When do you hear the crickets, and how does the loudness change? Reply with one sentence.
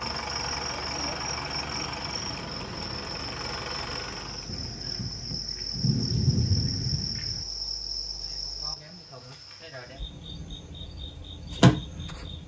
The crickets can be heard from 0.0 to 12.4 s, getting louder.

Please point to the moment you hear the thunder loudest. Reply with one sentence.
The volume of the thunder peaks at 6 seconds.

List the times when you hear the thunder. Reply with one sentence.
You can hear the thunder from 4.5 to 7.5 s.